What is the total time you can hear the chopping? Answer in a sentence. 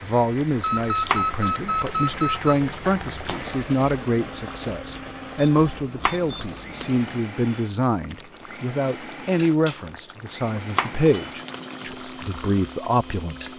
You can hear the chopping for 4 seconds altogether.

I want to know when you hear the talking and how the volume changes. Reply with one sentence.
The talking can be heard from 0.0 to 13.5 s, at a steady volume.